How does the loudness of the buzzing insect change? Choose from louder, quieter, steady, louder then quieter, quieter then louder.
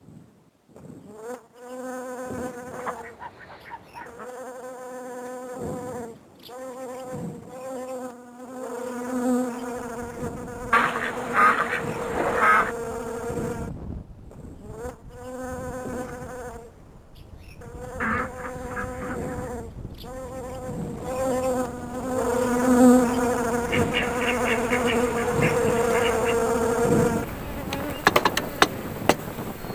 louder.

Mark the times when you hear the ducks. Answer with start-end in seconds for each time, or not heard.
2.7-4.3, 10.7-12.8, 18.0-19.5, 23.7-26.4.